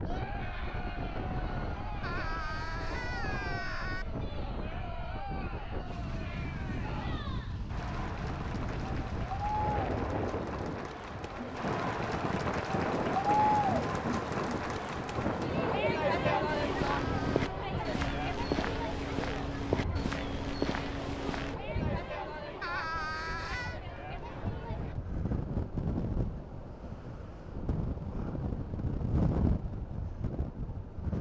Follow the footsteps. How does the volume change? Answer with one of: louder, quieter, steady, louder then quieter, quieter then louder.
steady.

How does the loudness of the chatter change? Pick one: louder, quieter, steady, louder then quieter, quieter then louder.
louder then quieter.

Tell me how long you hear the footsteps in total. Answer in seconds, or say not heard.
5 s.